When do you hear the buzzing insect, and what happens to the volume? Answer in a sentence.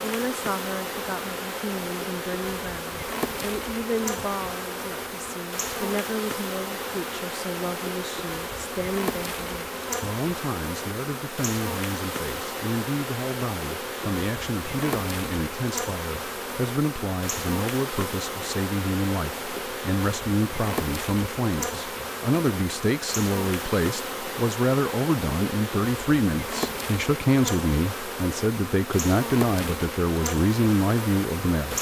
The buzzing insect can be heard from 0.0 to 31.7 s, at a steady volume.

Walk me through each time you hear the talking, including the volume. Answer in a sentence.
You can hear the talking from 0.0 to 31.7 s, getting louder.